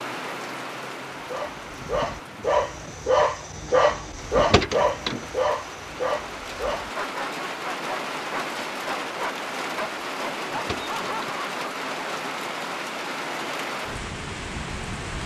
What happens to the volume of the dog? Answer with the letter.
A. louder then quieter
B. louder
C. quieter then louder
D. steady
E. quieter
E.